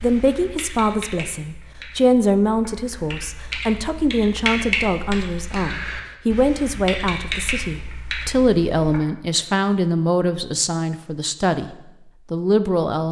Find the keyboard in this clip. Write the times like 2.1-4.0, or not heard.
0.0-9.0.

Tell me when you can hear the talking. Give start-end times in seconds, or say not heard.
0.0-13.0.